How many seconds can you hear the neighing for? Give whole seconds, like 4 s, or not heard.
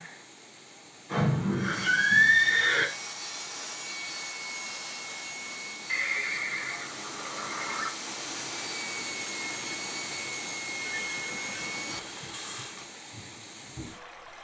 6 s.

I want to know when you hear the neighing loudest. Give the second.
2 s.